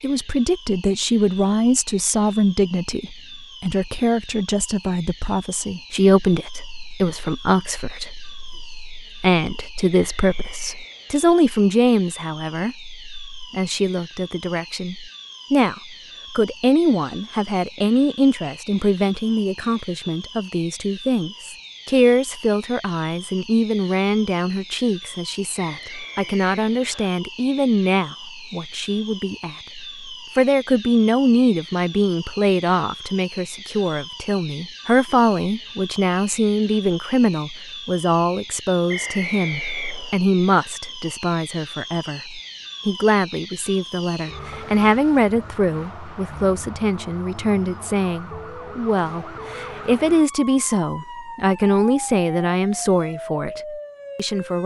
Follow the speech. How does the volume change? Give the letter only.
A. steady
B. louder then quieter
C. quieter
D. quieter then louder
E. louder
A.